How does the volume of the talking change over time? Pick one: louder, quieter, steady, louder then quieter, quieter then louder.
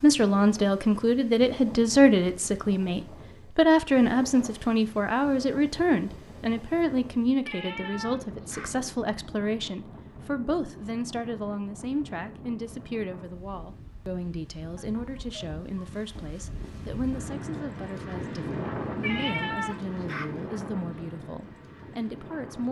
quieter.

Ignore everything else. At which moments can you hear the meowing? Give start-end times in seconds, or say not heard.
7.4-8.9, 19.0-20.5.